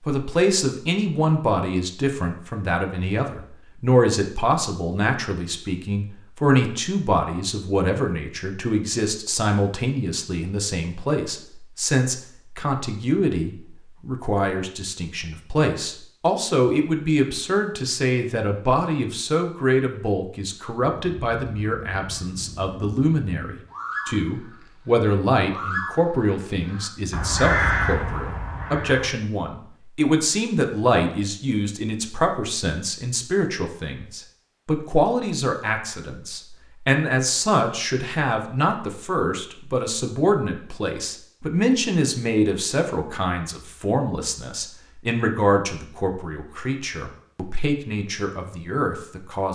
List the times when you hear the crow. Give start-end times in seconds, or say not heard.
21.1-29.1.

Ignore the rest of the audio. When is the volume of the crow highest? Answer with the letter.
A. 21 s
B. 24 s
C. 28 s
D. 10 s
C.